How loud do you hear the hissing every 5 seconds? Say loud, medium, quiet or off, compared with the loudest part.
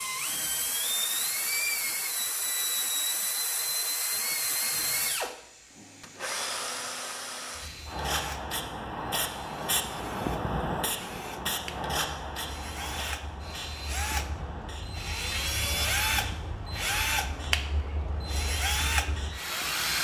quiet, loud, loud, medium.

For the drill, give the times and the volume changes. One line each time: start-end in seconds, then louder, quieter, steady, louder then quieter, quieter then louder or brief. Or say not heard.
0.0-19.9 quieter then louder.